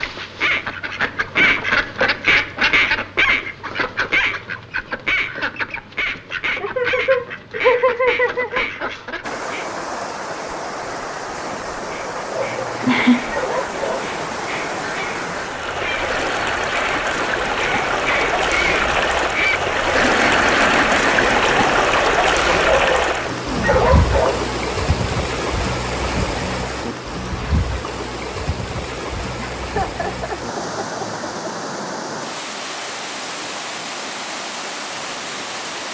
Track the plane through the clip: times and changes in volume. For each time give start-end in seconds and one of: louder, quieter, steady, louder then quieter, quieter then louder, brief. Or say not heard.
not heard.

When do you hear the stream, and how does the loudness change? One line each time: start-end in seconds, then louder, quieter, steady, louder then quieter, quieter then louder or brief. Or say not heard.
9.2-35.8 louder then quieter.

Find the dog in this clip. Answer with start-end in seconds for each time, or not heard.
12.2-14.1, 22.4-24.4.